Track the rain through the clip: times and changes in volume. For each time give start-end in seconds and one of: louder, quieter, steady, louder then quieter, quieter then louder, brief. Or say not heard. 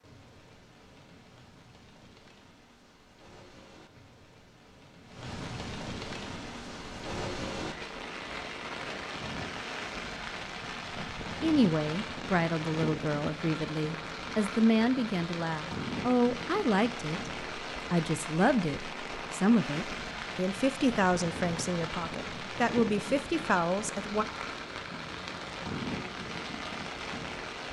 0.0-27.6 louder.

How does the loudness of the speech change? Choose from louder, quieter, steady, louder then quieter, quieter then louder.
steady.